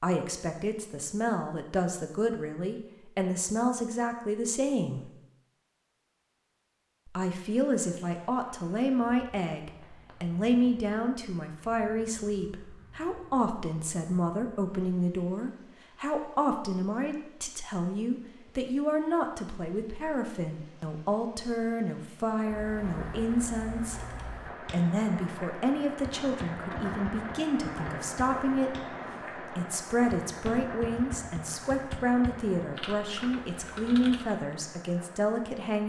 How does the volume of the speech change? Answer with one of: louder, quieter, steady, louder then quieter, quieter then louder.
steady.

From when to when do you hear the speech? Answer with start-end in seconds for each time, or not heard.
0.0-5.1, 7.0-35.8.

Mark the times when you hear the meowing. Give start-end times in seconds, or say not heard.
not heard.